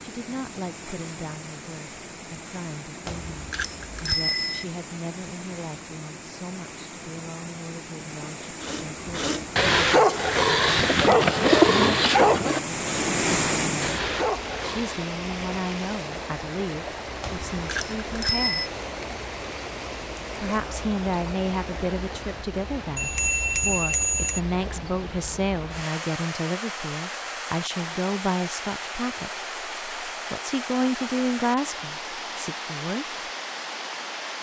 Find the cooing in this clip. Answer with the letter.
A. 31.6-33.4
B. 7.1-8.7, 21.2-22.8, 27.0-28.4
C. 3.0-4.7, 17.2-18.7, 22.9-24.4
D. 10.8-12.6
D.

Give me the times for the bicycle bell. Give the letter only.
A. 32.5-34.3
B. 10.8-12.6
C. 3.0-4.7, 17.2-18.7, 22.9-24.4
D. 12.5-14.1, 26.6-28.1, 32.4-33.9
C.